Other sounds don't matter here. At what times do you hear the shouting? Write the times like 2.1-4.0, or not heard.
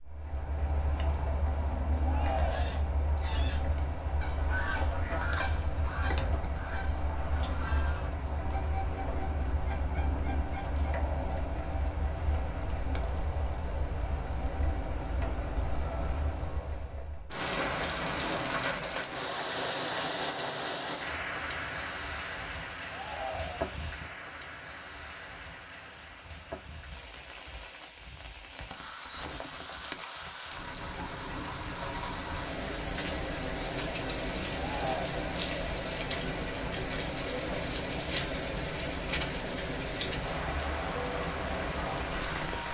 2.0-2.8, 22.9-23.7, 34.5-35.1.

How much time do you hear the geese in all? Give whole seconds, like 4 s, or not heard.
8 s.